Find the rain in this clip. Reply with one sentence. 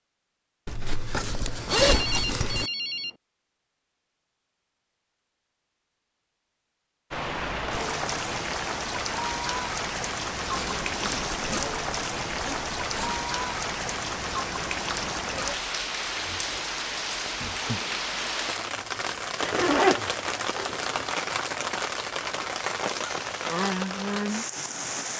You can hear the rain from 7.1 to 25.1 s.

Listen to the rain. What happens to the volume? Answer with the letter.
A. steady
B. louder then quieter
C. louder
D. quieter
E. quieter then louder
A.